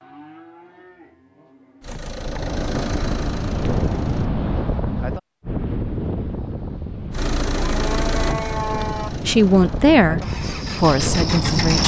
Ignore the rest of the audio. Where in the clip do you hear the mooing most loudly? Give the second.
9 s.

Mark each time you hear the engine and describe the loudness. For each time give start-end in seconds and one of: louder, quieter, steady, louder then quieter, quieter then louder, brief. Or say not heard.
1.8-4.3 brief
7.1-11.8 quieter then louder.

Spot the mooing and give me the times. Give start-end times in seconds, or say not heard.
0.0-2.0, 7.5-9.1.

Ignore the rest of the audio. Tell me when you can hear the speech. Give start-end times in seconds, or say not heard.
9.2-11.8.